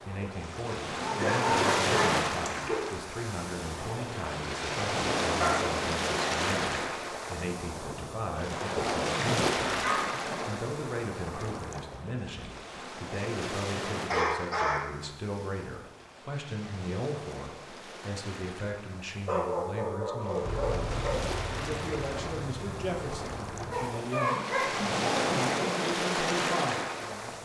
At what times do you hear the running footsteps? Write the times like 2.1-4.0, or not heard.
not heard.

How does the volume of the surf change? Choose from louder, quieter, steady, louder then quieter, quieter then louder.
quieter then louder.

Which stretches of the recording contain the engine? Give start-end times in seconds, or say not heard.
20.4-23.8.